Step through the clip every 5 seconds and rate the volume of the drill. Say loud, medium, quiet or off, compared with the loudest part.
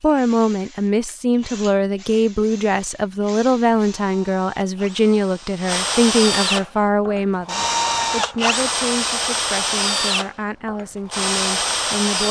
quiet, loud, loud.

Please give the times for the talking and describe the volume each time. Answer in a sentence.
You can hear the talking from 0.0 to 12.2 s, getting quieter.